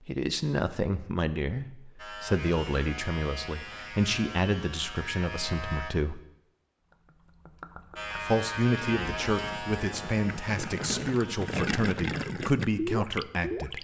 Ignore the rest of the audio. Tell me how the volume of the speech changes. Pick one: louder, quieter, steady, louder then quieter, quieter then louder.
steady.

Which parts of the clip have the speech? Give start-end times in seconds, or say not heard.
0.1-6.2, 8.2-13.7.